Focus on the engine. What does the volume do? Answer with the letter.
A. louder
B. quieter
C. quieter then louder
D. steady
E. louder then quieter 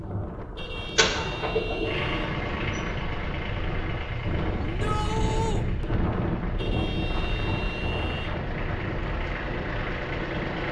C.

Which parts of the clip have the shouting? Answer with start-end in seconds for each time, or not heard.
4.6-5.7.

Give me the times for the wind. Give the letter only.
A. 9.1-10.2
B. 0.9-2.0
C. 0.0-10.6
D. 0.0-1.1
C.